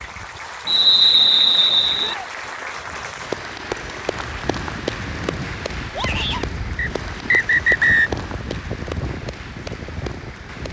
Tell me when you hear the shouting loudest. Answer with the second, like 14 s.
6 s.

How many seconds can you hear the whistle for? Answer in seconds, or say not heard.
3 s.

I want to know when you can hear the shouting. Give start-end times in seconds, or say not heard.
1.9-2.4, 5.9-6.6.